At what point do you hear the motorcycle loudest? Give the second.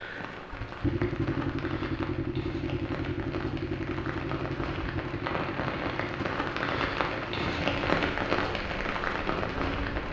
1 s.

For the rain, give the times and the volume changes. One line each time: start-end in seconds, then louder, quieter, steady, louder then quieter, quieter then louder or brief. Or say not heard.
0.0-10.0 louder.